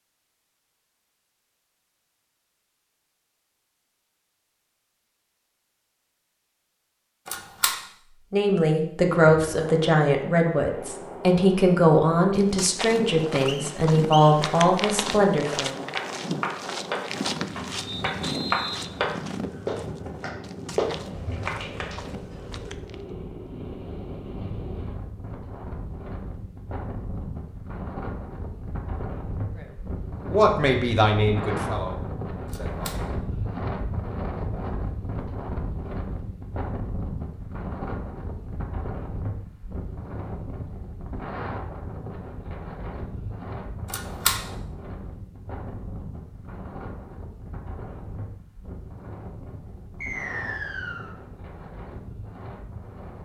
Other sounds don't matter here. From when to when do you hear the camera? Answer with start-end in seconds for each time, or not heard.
7.2-7.8, 32.5-33.0, 43.9-44.4.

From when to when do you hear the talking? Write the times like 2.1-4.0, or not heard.
8.3-15.8, 29.6-32.9.